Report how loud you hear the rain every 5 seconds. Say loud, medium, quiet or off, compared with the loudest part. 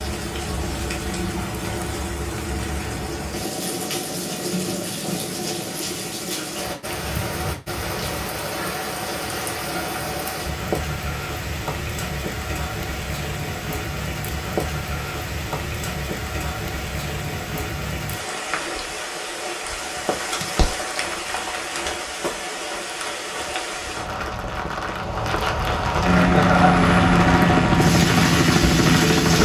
medium, medium, medium, medium, medium, loud.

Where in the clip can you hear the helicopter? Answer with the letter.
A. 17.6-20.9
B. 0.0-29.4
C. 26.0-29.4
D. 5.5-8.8
C.